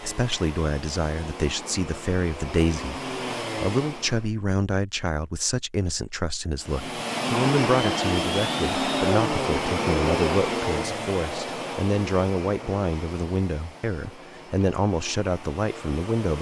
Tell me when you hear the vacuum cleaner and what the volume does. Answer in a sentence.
You can hear the vacuum cleaner from 0.0 to 4.3 s, getting louder; and from 6.6 to 16.3 s, getting quieter.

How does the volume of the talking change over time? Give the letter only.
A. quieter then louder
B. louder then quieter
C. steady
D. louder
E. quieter
C.